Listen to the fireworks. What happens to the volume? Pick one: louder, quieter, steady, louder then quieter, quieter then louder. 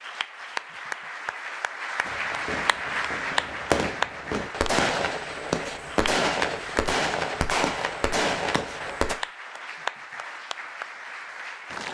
louder.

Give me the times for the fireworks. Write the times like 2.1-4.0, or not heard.
2.0-9.2.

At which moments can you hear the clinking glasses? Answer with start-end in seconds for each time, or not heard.
not heard.